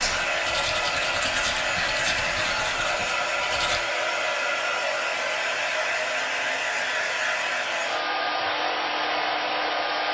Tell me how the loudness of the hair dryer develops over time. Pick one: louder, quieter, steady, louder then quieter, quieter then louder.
steady.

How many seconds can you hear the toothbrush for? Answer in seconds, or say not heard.
4 s.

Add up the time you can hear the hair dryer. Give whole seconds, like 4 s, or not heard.
10 s.